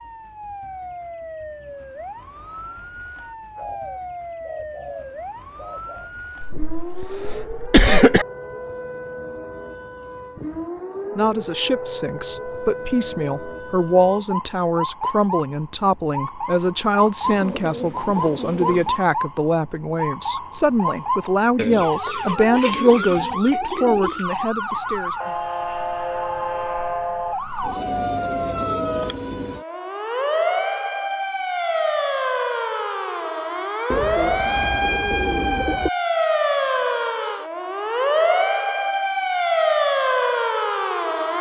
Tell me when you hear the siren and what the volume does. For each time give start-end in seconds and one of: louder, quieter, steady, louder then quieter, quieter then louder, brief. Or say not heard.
0.0-41.3 louder.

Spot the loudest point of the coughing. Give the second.
8 s.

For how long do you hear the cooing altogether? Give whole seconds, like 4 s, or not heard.
9 s.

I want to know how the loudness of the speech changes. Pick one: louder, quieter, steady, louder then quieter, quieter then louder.
steady.